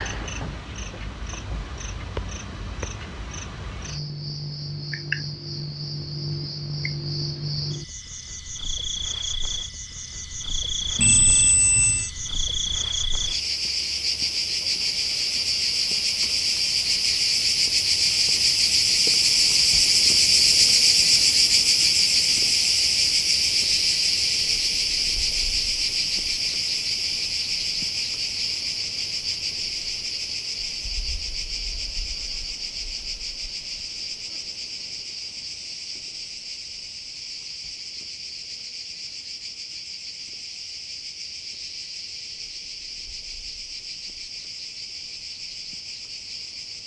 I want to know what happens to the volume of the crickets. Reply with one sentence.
The loudness of the crickets goes up, then down.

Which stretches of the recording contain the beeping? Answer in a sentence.
The beeping can be heard from 10.9 to 12.1 s.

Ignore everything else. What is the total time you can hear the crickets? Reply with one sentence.
You can hear the crickets for 47 seconds altogether.